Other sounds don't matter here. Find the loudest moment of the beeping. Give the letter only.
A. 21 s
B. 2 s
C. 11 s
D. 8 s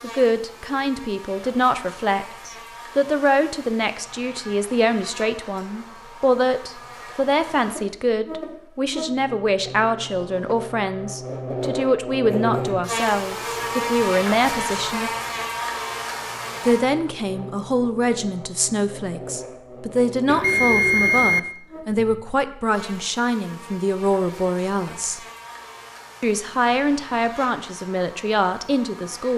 A.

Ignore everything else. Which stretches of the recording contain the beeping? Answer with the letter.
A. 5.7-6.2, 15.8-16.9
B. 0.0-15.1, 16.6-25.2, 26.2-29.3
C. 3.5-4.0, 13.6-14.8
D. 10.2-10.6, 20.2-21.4
D.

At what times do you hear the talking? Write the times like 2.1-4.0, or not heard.
0.0-15.1, 16.6-25.2, 26.2-29.3.